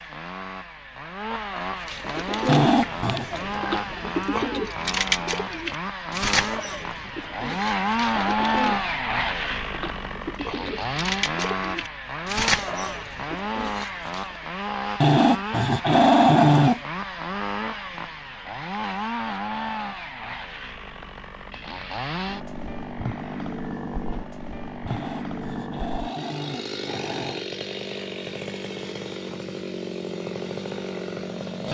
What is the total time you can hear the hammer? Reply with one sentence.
You can't hear the hammer here.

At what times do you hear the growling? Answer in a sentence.
You can hear the growling from 2.5 to 3.2 s, from 15.0 to 16.8 s and from 24.9 to 27.4 s.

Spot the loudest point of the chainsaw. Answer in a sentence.
The loudest moment of the chainsaw is at 8 seconds.